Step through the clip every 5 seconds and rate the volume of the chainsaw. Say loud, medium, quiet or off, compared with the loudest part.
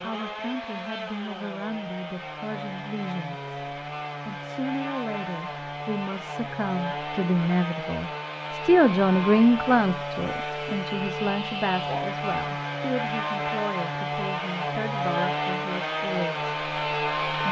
medium, medium, loud, loud.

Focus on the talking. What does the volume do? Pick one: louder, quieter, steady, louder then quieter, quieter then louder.
louder then quieter.